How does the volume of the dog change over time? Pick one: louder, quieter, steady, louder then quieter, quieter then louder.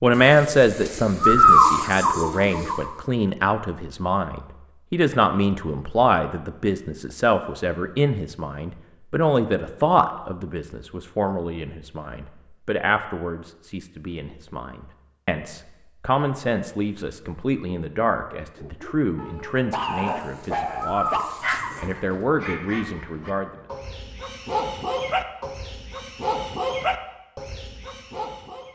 quieter then louder.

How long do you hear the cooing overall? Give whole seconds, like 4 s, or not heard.
5 s.